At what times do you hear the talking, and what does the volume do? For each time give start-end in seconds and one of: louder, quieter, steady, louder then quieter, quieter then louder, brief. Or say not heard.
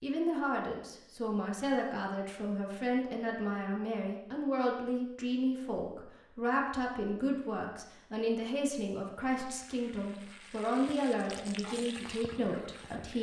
0.0-13.1 steady.